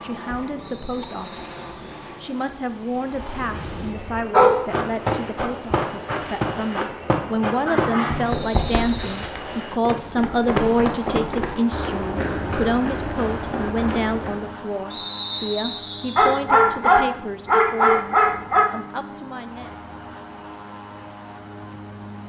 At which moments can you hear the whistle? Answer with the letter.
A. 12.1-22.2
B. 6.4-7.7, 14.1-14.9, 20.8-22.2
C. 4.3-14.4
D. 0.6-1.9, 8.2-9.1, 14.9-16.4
D.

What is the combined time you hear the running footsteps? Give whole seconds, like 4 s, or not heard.
10 s.